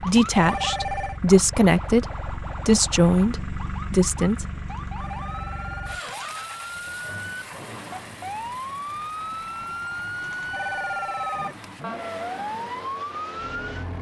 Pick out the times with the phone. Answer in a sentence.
The phone can be heard from 0.1 to 1.2 s, from 4.7 to 6.5 s and from 10.2 to 11.7 s.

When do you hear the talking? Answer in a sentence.
The talking can be heard from 0.0 to 4.5 s.